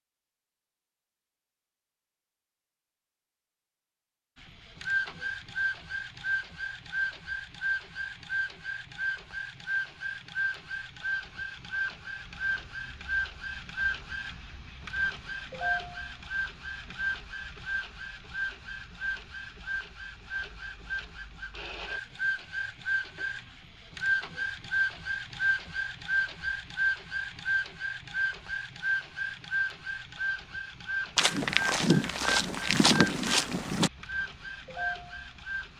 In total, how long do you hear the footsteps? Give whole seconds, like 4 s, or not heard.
3 s.